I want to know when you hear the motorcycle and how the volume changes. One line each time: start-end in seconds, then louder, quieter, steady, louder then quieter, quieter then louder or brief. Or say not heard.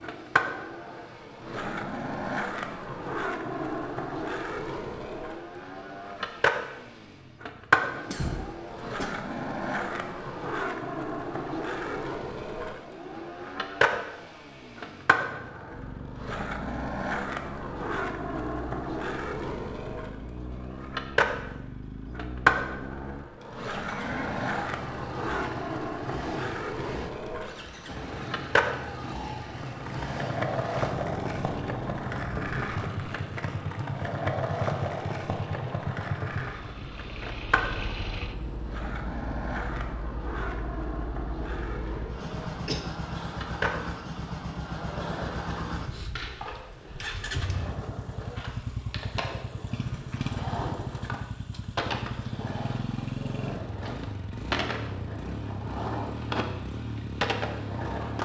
0.0-58.2 louder.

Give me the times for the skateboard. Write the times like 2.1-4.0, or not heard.
0.0-58.2.